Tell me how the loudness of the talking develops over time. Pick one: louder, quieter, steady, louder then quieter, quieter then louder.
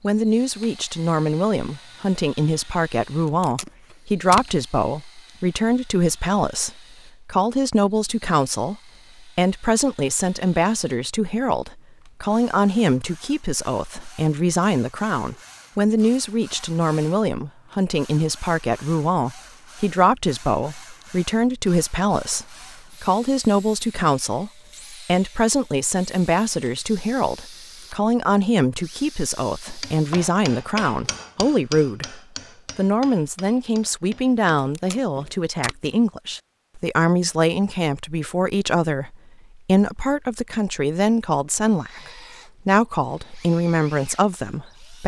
steady.